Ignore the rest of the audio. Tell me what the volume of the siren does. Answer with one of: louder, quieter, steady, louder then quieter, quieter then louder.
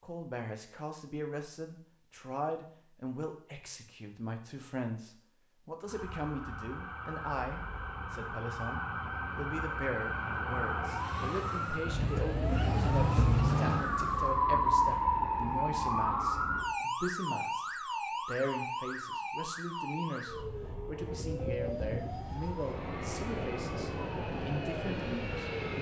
louder then quieter.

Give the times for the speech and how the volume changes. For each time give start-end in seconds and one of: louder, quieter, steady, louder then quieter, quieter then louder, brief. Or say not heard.
0.0-25.5 steady.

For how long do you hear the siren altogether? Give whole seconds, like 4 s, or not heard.
20 s.